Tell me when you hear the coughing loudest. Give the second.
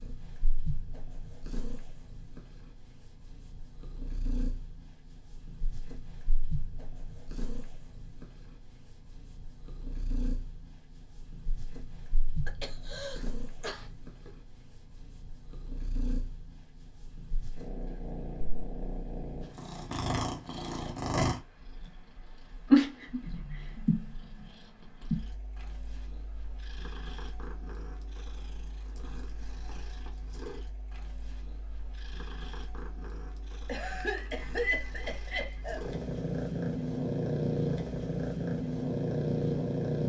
35 s.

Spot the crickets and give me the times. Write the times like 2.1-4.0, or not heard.
not heard.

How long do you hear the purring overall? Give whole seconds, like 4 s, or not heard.
40 s.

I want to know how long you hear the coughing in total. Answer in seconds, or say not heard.
4 s.